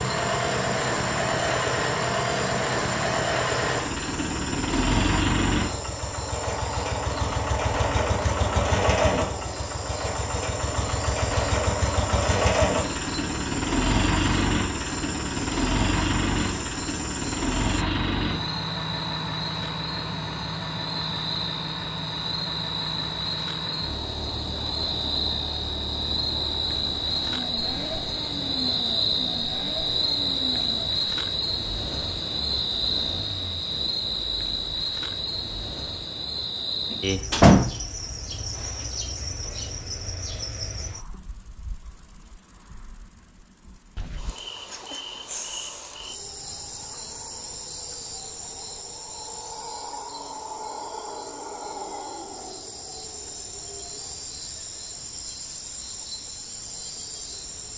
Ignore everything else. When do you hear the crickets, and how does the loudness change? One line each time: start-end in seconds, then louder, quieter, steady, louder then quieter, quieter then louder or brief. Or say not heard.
0.0-57.7 louder then quieter.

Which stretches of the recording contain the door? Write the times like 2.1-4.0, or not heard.
36.9-37.8.